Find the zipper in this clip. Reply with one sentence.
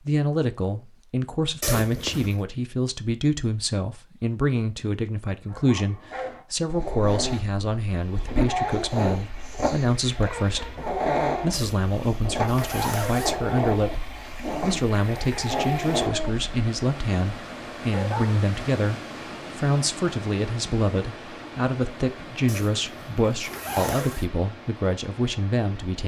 You can hear the zipper from 1.6 to 2.4 s, from 11.5 to 13.3 s and from 22.4 to 24.2 s.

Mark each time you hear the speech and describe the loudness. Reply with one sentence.
The speech can be heard from 0.0 to 10.7 s, at a steady volume; and from 11.4 to 26.0 s, at a steady volume.